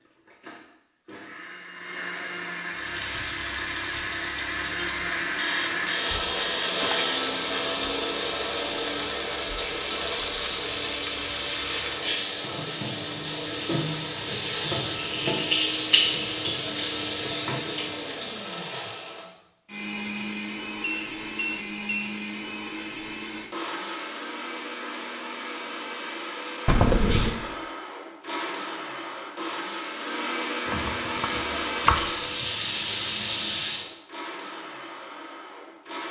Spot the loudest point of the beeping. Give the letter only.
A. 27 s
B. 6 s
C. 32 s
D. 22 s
A.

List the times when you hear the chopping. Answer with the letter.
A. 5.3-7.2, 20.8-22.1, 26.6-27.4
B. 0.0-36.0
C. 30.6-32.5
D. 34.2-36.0
C.